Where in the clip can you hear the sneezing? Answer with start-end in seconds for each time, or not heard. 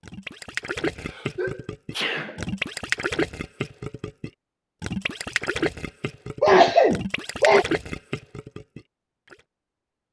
0.9-2.5, 6.4-7.7.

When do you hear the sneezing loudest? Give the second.
7 s.